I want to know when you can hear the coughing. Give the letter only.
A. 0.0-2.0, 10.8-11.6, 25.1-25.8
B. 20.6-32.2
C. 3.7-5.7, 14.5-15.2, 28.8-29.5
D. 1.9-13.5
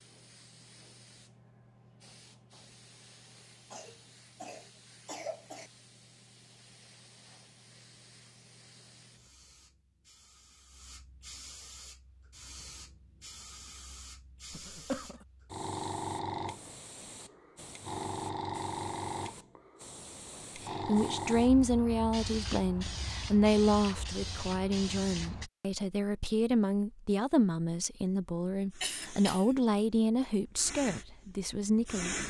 C.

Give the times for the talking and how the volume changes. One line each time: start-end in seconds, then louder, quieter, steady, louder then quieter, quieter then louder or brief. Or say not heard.
20.6-32.2 steady.